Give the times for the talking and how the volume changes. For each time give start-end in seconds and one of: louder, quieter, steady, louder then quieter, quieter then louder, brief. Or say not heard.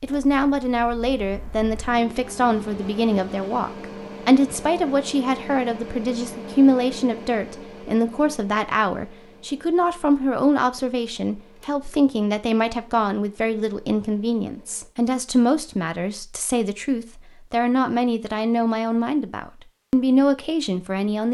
0.0-21.3 steady.